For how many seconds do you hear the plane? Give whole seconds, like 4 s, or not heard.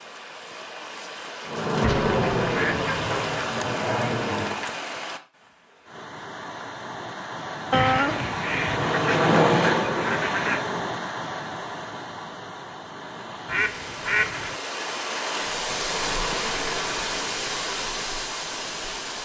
6 s.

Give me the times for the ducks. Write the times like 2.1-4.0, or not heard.
1.8-3.4, 7.7-10.7, 13.4-14.6.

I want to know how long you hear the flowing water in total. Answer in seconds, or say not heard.
19 s.